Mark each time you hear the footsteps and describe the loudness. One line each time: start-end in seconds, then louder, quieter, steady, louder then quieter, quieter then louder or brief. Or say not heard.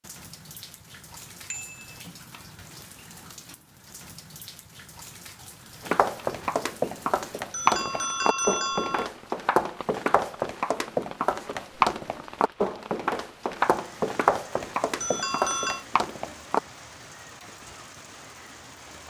5.8-16.6 steady.